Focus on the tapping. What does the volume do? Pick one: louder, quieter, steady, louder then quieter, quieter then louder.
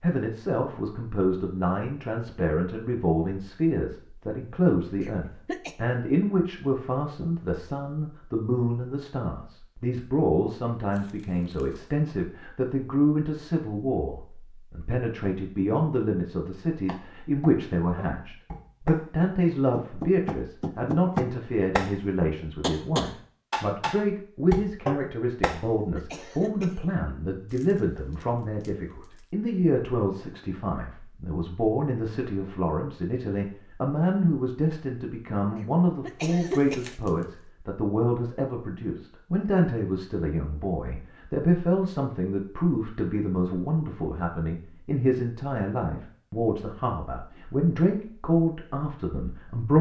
louder.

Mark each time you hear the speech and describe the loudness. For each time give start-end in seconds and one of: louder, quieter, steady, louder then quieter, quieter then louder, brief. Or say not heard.
0.0-49.7 steady.